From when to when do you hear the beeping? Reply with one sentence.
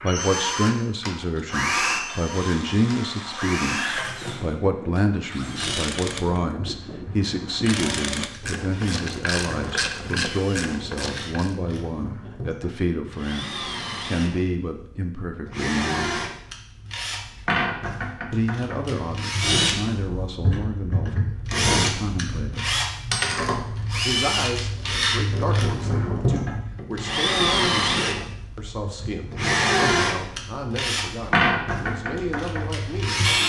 The beeping can't be heard in this clip.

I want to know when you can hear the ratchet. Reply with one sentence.
The ratchet can be heard from 1.1 to 11.6 s.